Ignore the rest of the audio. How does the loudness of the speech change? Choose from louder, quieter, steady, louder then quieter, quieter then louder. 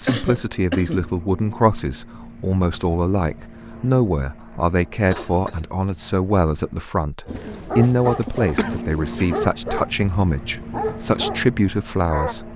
steady.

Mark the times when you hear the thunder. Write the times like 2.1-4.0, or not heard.
not heard.